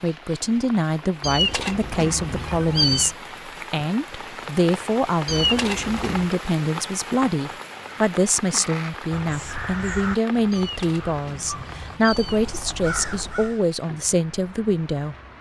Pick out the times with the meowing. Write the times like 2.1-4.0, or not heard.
1.2-3.1, 5.2-6.3, 10.5-12.5.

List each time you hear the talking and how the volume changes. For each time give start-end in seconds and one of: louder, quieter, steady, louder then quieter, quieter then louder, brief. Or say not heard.
0.0-15.2 steady.